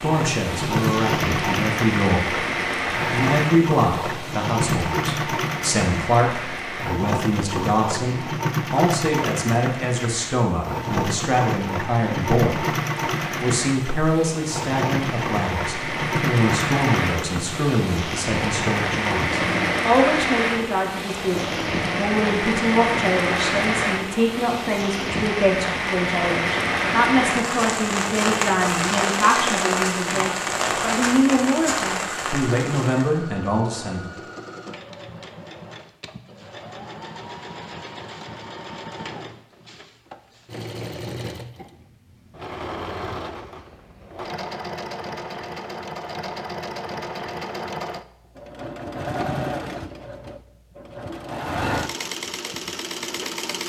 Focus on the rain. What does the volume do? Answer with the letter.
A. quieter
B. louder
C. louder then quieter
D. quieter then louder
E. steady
D.